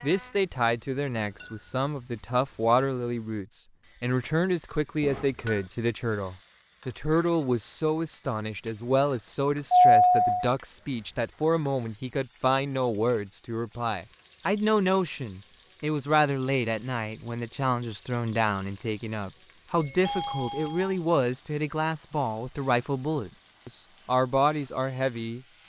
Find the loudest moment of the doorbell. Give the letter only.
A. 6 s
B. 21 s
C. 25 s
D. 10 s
D.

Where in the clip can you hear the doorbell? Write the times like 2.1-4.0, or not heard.
5.0-5.7, 9.7-10.4, 19.8-20.9.